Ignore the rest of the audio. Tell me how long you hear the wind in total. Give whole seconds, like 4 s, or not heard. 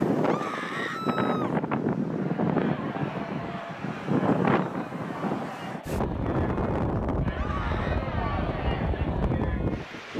10 s.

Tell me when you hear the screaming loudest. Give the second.
1 s.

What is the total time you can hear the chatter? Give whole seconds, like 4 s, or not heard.
8 s.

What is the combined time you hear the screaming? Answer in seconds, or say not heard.
2 s.